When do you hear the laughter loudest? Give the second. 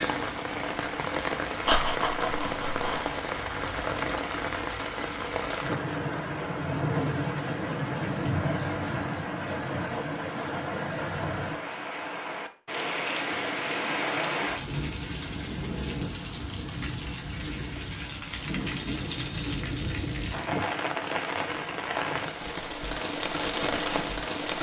2 s.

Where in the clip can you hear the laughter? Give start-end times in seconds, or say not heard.
1.6-3.1.